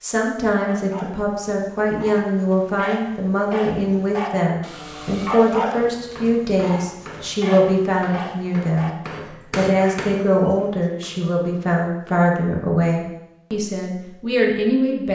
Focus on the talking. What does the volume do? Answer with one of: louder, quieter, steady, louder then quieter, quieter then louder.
steady.